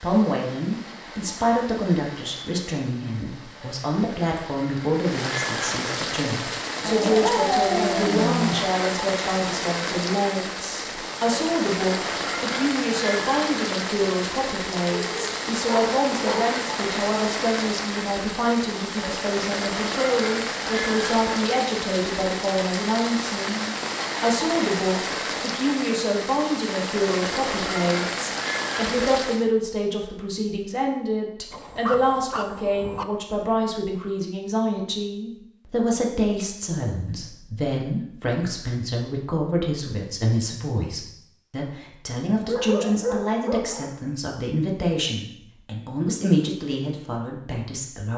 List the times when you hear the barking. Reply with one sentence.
The barking can be heard from 6.8 to 8.7 s, from 14.9 to 16.6 s, from 31.5 to 33.0 s and from 42.5 to 44.0 s.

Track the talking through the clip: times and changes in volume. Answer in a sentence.
The talking can be heard from 0.0 to 48.1 s, at a steady volume.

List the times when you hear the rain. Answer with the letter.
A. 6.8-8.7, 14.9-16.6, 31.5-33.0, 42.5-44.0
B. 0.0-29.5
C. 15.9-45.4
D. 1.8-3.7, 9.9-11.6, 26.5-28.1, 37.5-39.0
B.